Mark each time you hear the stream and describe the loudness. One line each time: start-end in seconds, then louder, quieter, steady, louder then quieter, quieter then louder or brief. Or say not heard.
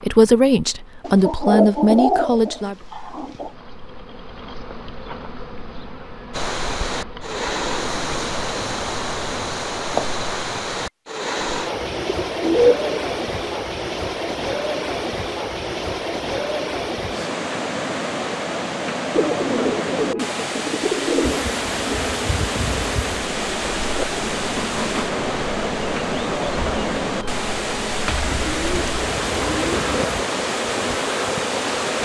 6.3-31.9 steady.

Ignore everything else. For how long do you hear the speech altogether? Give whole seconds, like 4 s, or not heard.
3 s.